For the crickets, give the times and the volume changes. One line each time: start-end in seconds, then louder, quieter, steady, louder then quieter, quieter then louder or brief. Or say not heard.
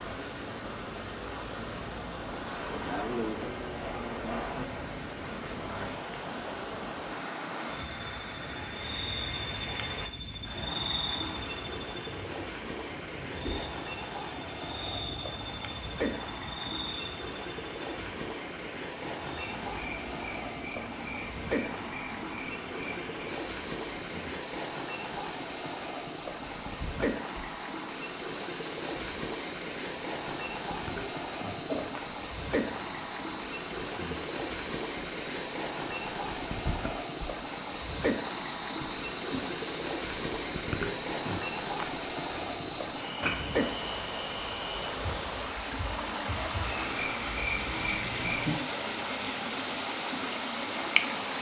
0.0-51.3 quieter then louder.